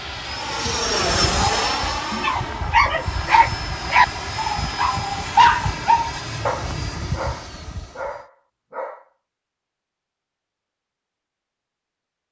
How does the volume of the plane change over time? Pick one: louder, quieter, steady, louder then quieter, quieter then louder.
quieter.